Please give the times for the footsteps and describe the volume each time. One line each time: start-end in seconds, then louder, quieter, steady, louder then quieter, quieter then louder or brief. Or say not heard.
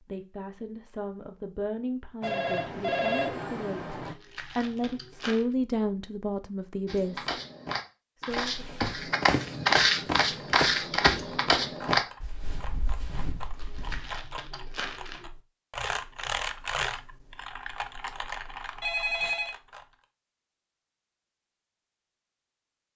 6.8-14.1 louder then quieter.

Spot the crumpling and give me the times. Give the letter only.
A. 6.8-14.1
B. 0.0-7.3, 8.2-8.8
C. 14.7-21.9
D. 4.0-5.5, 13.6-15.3
D.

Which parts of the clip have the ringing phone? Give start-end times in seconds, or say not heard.
2.2-4.2, 8.3-9.1, 18.8-19.6.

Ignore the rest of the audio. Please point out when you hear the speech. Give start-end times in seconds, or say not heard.
0.0-7.3, 8.2-8.8.